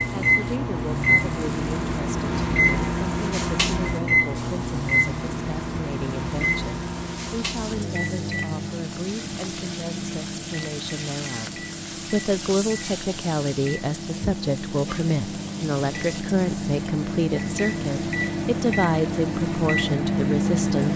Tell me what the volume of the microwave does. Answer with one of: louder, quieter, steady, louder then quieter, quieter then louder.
quieter then louder.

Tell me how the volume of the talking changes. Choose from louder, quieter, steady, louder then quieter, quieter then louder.
louder.